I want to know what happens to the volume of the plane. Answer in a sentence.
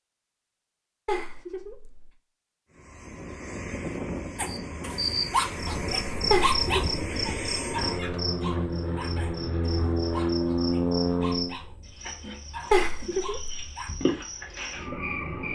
The volume of the plane goes up.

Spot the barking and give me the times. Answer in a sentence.
You can hear the barking from 4.3 to 13.9 s.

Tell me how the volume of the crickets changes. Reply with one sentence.
The loudness of the crickets goes down, then up.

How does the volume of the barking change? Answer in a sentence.
The volume of the barking goes down.